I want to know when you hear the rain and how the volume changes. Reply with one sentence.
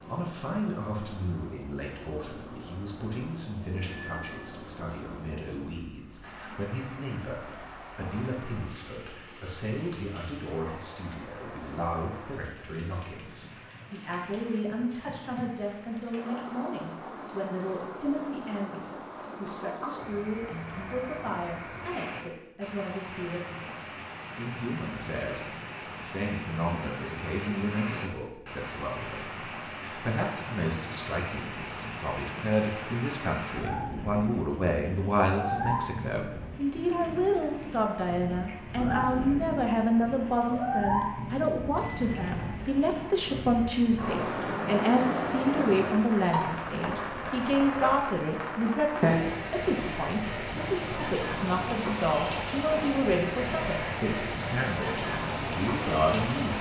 The rain can be heard from 0.0 to 56.5 s, getting louder.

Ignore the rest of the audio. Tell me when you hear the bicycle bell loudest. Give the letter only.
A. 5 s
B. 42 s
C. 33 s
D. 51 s
B.